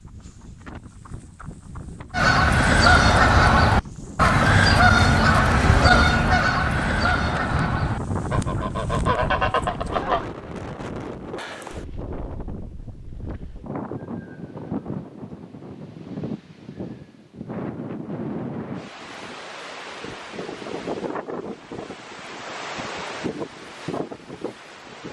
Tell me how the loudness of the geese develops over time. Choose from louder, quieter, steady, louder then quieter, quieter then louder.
quieter.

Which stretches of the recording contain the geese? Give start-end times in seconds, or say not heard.
2.1-10.2.